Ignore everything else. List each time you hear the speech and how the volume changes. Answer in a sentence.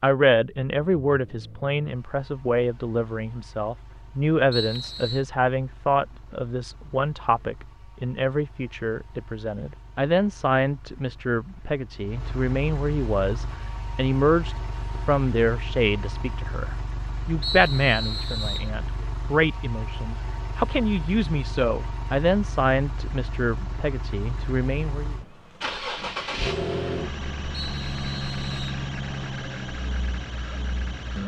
You can hear the speech from 0.0 to 25.1 s, at a steady volume.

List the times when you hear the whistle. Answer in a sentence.
You can hear the whistle from 4.5 to 5.2 s, from 17.4 to 18.7 s and from 27.6 to 28.9 s.